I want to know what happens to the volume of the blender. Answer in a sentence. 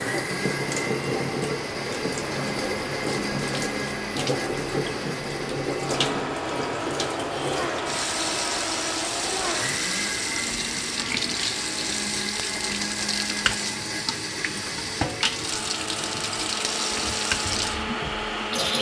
The volume of the blender stays about the same.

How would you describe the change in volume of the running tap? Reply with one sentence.
The volume of the running tap stays about the same.